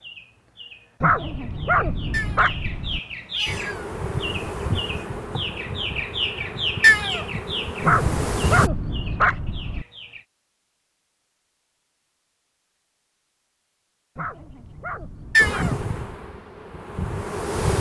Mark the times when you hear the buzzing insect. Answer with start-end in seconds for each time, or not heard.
3.5-8.7, 15.3-17.7.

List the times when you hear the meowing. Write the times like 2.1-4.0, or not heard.
2.1-2.5, 3.3-3.9, 6.8-7.2, 15.3-15.8.